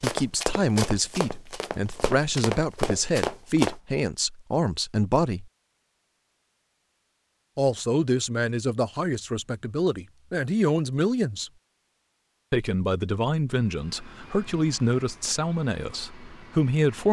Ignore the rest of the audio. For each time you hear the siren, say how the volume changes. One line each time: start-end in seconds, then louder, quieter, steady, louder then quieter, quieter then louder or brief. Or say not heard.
not heard.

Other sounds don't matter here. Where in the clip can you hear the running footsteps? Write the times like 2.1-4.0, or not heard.
0.0-3.8.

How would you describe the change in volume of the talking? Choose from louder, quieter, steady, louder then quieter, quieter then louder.
steady.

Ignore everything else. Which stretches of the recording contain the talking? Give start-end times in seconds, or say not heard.
0.0-5.5, 7.5-11.5, 12.5-17.0.